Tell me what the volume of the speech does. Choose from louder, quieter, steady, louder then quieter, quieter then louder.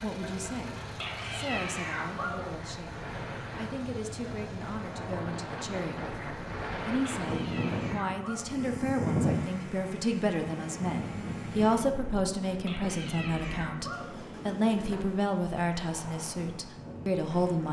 louder.